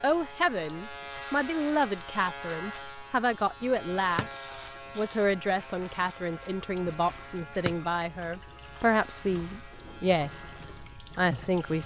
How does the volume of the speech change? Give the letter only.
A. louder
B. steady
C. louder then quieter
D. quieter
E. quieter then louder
B.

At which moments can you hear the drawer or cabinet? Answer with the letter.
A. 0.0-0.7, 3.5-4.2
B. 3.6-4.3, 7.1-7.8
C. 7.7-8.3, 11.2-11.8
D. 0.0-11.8
B.